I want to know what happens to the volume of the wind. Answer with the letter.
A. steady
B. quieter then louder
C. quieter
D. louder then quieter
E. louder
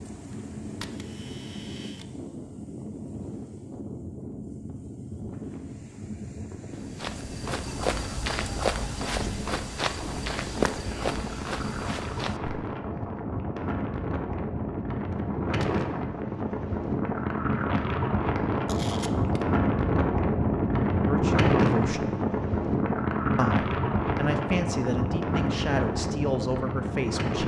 E.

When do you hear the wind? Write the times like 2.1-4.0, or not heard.
0.0-27.4.